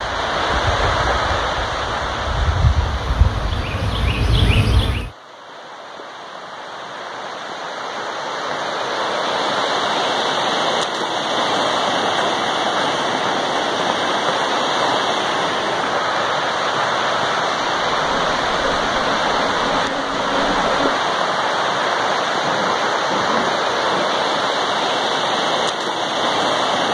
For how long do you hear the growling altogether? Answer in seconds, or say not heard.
2 s.